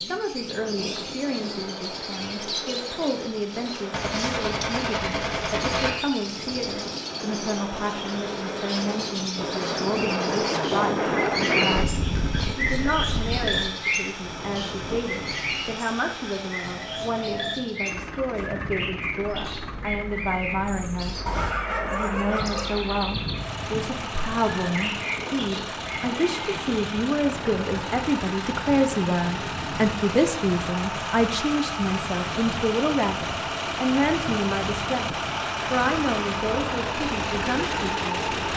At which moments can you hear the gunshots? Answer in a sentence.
You can hear the gunshots from 3.9 to 5.9 s.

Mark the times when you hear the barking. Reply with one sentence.
The barking can be heard from 21.2 to 22.8 s.